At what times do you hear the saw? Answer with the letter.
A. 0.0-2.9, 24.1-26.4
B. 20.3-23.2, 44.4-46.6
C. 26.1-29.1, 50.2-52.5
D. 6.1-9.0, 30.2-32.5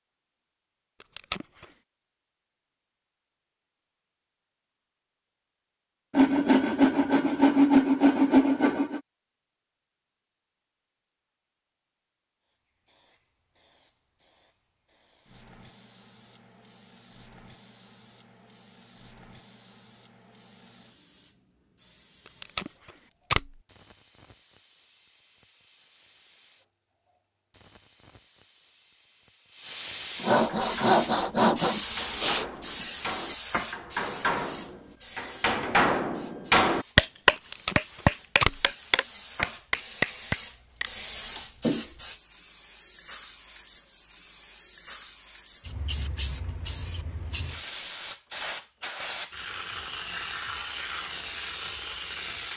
D.